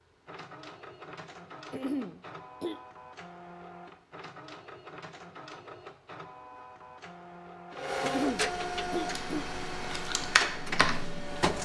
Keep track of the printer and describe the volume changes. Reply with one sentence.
The loudness of the printer goes up.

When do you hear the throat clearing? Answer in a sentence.
You can hear the throat clearing from 1.7 to 2.8 s and from 8.0 to 9.6 s.